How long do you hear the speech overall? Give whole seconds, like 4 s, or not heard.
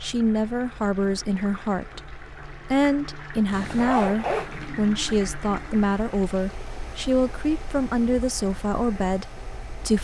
10 s.